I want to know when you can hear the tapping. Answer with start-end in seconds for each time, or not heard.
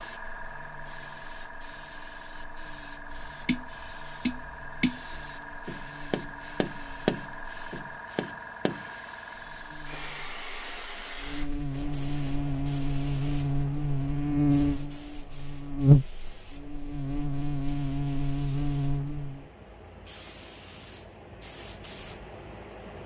3.2-8.8.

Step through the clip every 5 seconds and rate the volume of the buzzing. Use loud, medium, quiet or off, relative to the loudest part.
quiet, quiet, loud, loud, off.